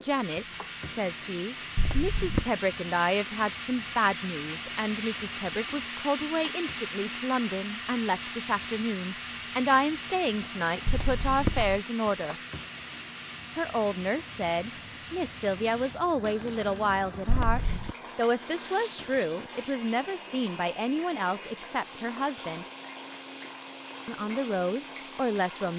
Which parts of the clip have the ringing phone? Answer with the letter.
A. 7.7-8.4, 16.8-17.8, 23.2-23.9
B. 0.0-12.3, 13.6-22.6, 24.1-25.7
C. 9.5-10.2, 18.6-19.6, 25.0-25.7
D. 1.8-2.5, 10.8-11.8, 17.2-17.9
D.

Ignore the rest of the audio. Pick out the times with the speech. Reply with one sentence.
The speech can be heard from 0.0 to 12.3 s, from 13.6 to 22.6 s and from 24.1 to 25.7 s.